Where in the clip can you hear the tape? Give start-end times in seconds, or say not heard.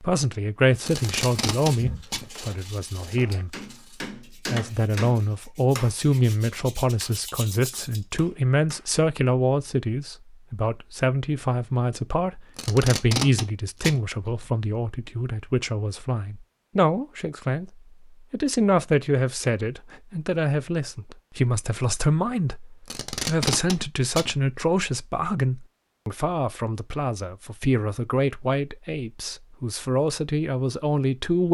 0.8-2.3, 12.6-14.4, 22.9-24.4.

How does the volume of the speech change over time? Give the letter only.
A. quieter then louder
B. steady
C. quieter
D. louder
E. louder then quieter
B.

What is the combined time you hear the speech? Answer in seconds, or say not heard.
31 s.